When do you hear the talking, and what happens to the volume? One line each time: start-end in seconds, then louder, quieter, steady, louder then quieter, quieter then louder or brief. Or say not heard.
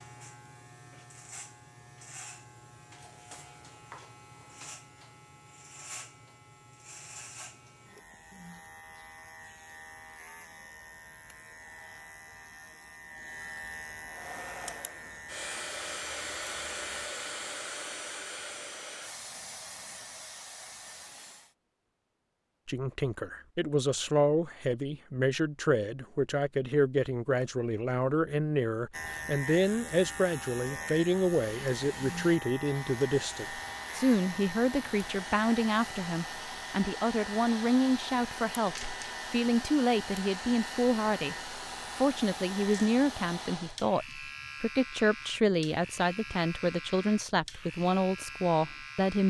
22.6-49.2 steady.